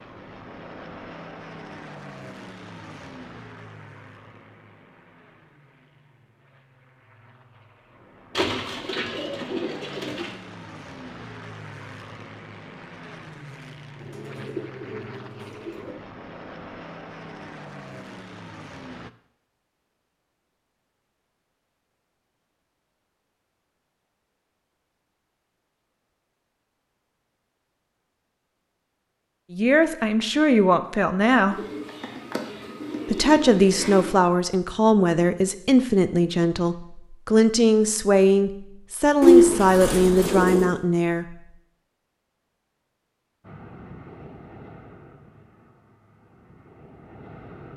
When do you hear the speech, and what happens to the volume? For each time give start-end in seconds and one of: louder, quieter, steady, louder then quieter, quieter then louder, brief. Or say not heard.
29.5-31.6 brief
33.0-41.5 steady.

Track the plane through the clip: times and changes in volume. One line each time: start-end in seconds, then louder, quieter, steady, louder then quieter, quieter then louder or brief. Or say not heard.
0.0-19.1 quieter then louder
43.4-47.7 quieter then louder.